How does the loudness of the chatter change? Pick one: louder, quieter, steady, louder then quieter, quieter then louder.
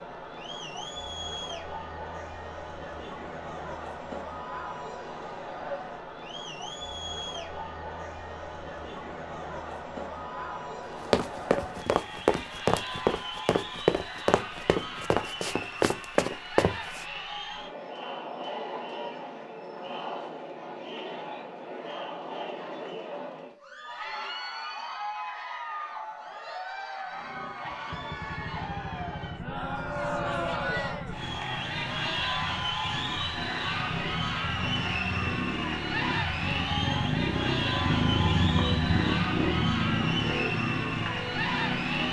louder.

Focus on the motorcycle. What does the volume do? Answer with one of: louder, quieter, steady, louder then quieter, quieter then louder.
louder.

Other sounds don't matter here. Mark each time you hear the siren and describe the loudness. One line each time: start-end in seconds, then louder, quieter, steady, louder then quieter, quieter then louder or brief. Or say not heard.
not heard.